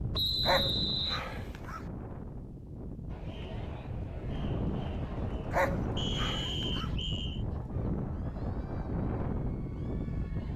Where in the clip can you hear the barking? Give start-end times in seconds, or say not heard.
0.5-1.9, 5.5-7.0.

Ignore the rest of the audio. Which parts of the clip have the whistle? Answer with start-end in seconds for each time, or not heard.
0.1-1.2, 6.0-7.5.